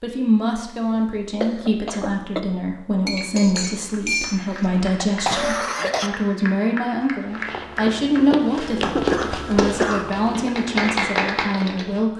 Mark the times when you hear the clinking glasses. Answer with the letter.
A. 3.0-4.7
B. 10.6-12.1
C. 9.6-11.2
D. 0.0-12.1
A.